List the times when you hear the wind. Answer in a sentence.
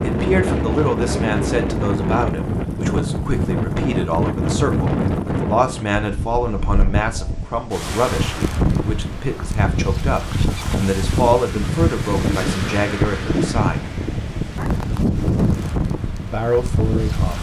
You can hear the wind from 0.0 to 17.3 s.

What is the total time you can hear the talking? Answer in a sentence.
You can hear the talking for 15 seconds altogether.